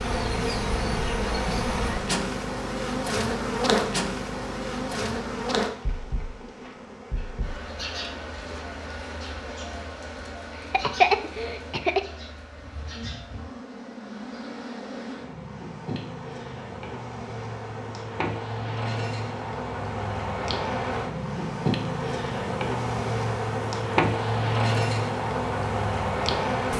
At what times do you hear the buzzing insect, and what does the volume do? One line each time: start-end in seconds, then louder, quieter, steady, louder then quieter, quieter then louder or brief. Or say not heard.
0.0-26.7 quieter then louder.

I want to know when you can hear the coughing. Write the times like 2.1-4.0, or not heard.
10.7-12.0.